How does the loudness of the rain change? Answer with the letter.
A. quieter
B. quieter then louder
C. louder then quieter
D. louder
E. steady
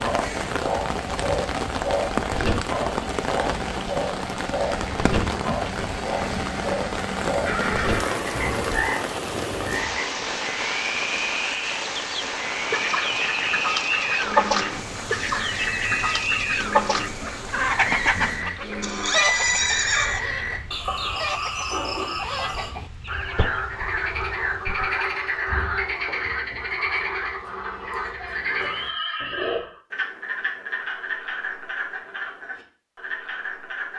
A.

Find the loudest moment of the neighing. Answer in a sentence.
The loudest moment of the neighing is at 19 seconds.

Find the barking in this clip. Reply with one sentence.
The barking can't be heard in this clip.